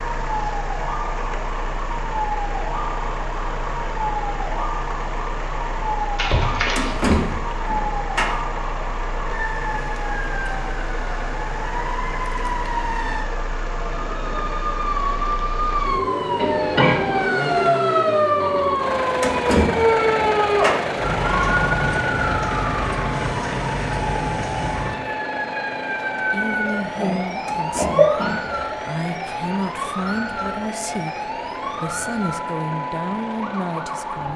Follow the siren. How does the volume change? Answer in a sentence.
The loudness of the siren goes up, then down.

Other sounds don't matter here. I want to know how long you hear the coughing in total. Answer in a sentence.
The coughing can be heard for 4 seconds in total.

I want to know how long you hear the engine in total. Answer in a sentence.
You can hear the engine for 34 seconds altogether.